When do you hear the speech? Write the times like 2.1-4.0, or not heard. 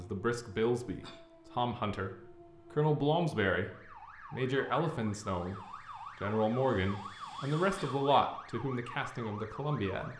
0.0-3.7, 4.3-5.6, 6.2-10.1.